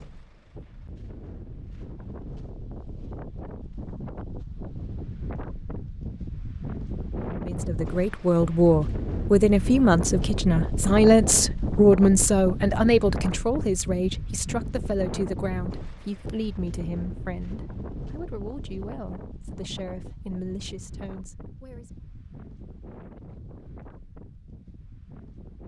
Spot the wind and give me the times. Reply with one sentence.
You can hear the wind from 0.0 to 25.6 s.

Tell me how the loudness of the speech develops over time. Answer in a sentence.
The loudness of the speech goes down.